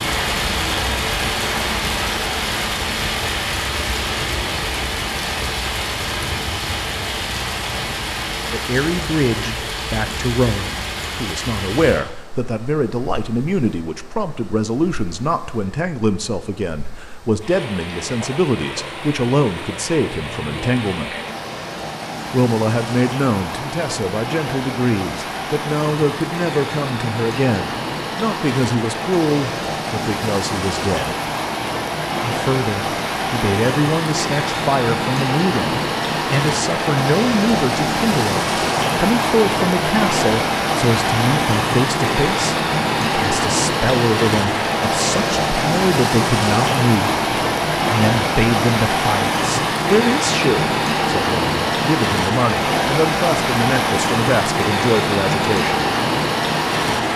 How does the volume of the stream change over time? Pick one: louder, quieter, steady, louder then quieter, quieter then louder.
quieter then louder.